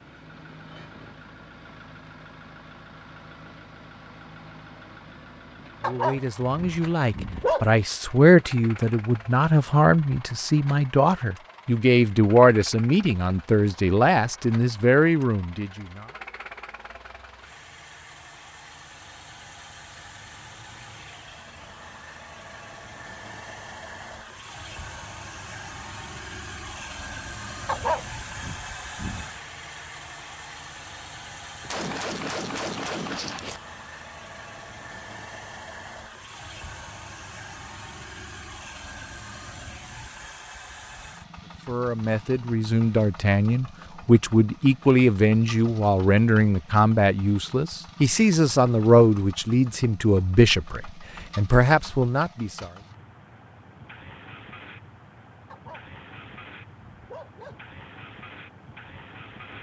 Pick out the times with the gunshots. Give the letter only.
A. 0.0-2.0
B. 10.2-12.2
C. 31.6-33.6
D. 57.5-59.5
C.